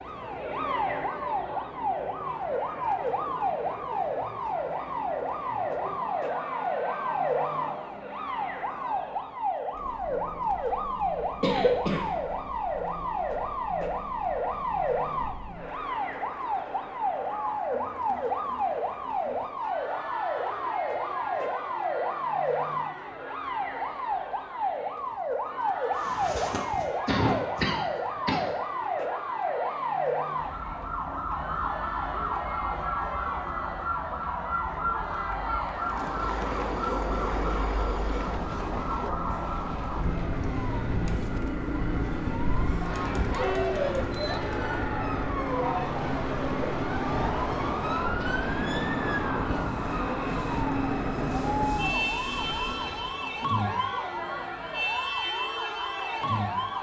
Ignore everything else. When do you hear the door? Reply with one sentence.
You can't hear the door here.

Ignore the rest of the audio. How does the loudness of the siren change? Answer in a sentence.
The volume of the siren stays about the same.